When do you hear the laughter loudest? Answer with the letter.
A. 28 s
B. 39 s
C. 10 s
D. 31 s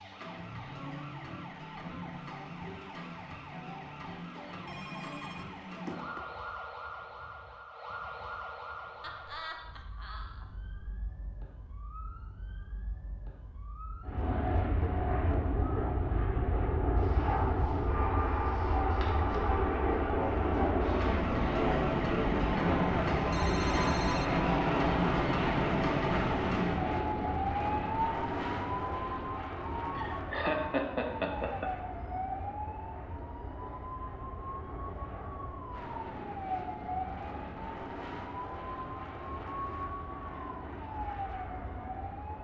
D.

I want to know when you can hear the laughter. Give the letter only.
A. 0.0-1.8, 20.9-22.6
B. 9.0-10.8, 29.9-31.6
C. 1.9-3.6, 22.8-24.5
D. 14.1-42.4
B.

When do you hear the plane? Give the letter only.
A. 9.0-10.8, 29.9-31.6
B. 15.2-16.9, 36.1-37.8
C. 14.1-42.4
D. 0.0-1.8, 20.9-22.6
C.